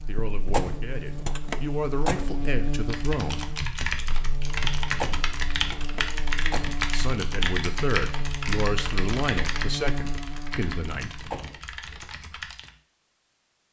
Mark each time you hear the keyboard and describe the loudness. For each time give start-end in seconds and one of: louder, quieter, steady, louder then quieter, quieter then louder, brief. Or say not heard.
2.8-12.8 quieter.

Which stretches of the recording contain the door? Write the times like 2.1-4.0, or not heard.
0.1-2.5, 4.8-6.8, 10.9-12.1.